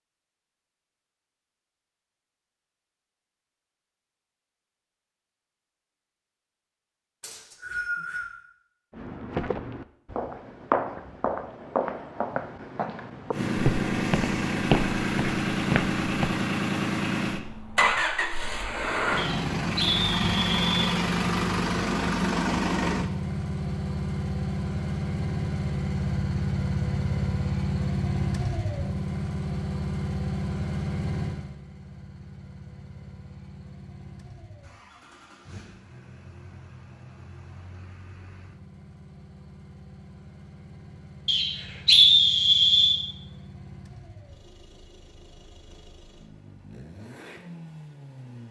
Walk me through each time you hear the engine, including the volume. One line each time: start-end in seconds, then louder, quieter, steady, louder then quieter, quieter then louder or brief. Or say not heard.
13.3-48.4 quieter.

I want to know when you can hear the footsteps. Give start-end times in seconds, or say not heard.
8.9-16.4.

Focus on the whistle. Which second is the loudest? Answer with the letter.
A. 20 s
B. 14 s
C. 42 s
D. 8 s
C.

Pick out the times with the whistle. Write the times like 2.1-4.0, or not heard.
7.2-8.2, 19.1-20.9, 41.2-43.0.